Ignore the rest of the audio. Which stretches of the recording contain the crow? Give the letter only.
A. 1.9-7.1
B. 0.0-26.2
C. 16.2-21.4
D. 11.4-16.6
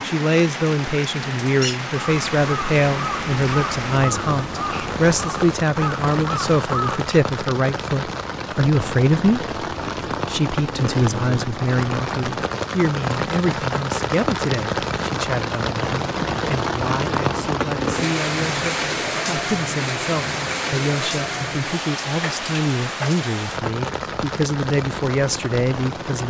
A.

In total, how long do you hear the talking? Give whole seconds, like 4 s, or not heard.
26 s.